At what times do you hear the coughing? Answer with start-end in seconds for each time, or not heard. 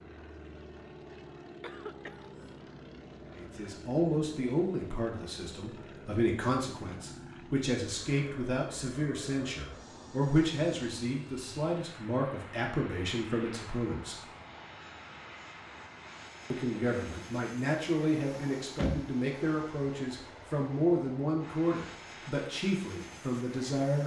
1.6-2.5.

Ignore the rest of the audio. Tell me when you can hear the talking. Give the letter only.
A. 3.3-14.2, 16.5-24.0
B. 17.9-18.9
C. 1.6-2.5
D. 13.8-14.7
A.